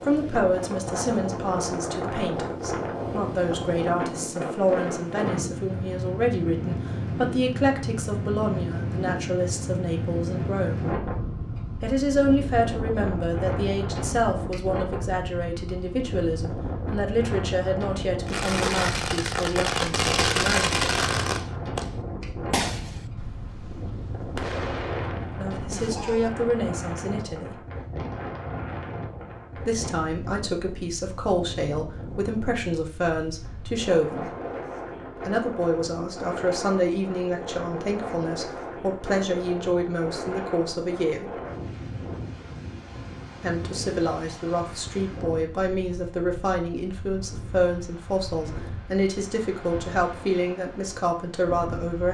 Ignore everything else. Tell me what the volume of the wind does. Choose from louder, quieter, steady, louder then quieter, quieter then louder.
quieter.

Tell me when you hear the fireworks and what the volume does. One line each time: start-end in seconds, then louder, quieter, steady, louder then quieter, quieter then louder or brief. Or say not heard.
18.2-26.3 quieter then louder.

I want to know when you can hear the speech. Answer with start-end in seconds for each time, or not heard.
0.1-10.9, 11.8-20.8, 25.4-27.6, 29.6-34.3, 35.2-41.4, 43.4-52.0.